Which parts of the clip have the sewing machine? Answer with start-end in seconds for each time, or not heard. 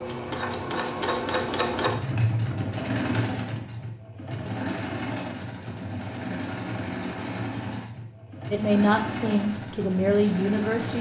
0.0-10.9.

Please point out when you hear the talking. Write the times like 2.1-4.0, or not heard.
8.5-10.9.